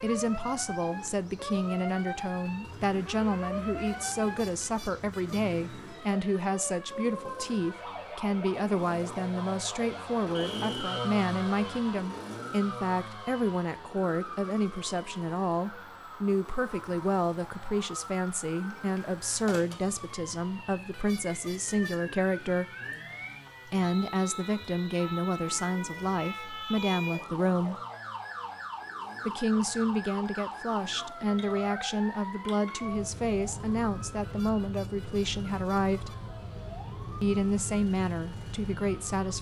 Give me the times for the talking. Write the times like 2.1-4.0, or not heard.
0.0-22.6, 23.6-27.8, 29.2-36.1, 37.2-39.3.